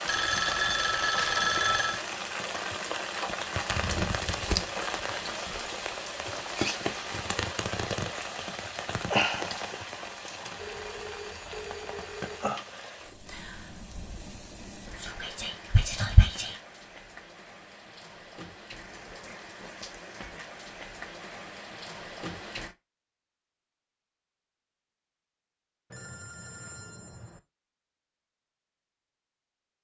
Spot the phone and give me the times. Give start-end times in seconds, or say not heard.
0.1-2.0, 10.6-12.5, 25.9-27.4.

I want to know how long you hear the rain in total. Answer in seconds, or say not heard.
23 s.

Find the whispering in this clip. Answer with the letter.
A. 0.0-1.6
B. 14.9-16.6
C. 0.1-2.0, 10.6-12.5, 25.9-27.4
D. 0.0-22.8
B.